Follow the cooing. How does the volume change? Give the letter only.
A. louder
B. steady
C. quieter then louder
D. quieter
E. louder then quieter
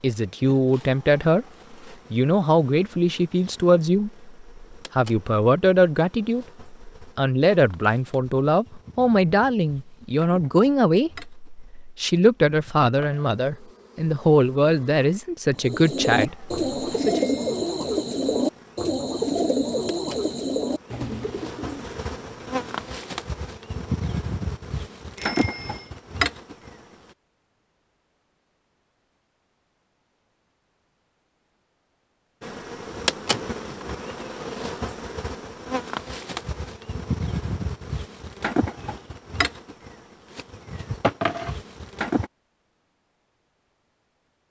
D.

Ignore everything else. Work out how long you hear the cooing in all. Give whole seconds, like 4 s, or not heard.
7 s.